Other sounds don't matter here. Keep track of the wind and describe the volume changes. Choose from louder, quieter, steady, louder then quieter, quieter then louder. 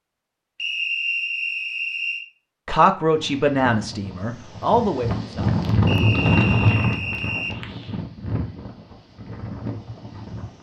louder then quieter.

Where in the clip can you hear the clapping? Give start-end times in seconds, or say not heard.
not heard.